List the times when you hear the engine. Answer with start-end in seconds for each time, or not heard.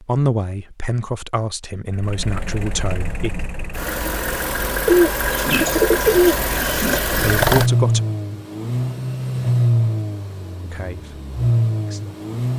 1.9-12.5.